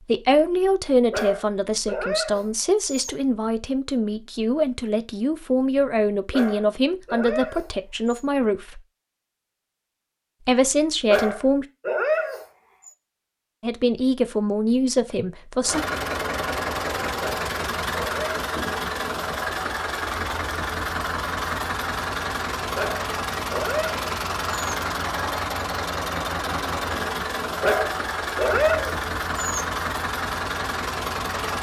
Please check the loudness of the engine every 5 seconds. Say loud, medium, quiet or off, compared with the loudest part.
off, off, off, loud, loud, loud, loud.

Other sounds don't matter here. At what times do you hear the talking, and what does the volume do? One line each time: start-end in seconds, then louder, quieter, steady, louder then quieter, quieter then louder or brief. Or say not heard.
0.1-8.8 steady
10.4-11.7 brief
13.6-15.8 brief.